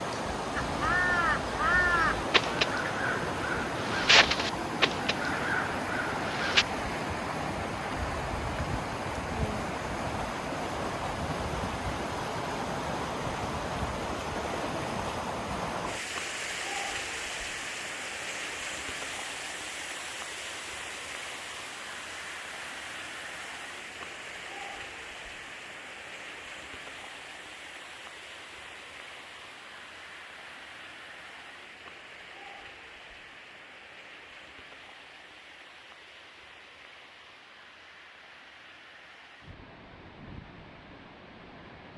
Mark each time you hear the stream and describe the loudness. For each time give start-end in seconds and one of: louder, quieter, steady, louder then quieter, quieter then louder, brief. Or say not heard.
0.0-41.9 quieter.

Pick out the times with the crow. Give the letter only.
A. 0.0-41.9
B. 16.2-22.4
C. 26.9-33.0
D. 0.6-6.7
D.